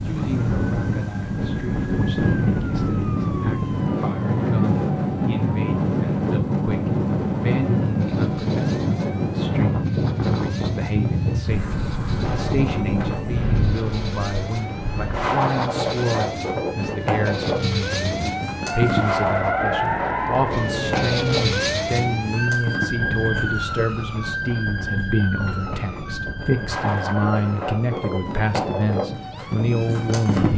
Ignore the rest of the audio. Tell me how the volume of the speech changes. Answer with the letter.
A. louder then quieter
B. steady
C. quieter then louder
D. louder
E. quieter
D.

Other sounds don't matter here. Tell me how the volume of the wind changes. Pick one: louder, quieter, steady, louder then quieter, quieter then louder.
quieter.